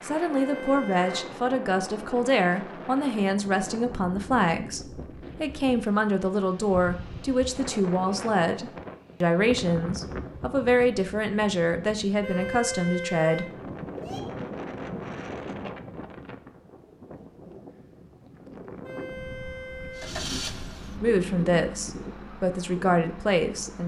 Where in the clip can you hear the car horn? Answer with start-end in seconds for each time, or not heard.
0.3-1.2, 12.2-14.2, 18.8-20.1.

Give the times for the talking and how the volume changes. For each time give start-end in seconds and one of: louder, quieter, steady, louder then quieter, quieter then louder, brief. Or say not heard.
0.0-13.4 steady
21.0-23.8 brief.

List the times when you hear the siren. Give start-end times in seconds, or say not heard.
not heard.